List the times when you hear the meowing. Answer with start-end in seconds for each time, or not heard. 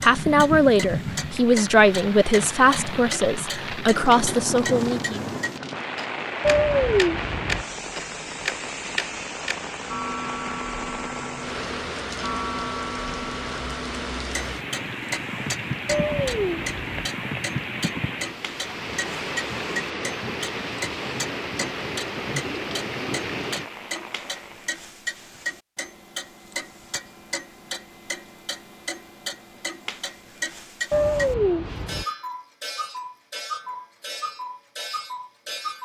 6.4-7.7, 15.8-17.1, 30.9-32.0.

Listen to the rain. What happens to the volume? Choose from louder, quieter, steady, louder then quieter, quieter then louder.
steady.